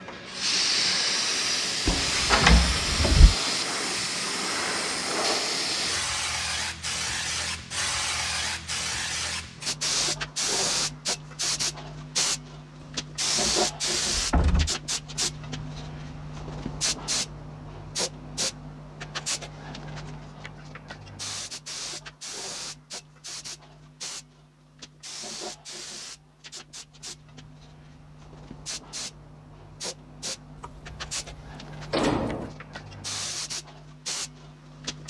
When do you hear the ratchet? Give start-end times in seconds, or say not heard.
not heard.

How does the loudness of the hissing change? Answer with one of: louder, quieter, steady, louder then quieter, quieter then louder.
quieter.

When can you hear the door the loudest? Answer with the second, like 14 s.
2 s.